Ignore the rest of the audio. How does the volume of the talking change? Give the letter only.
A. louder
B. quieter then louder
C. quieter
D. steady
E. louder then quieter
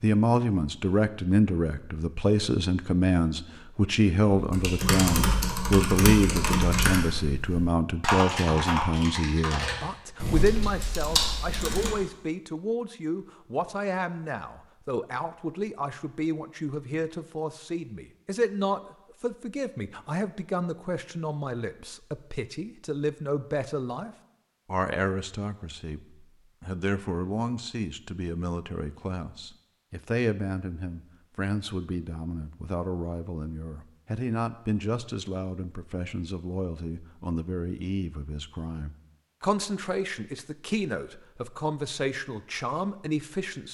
C.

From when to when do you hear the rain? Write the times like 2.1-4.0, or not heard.
not heard.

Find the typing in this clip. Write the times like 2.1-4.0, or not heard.
4.3-11.9.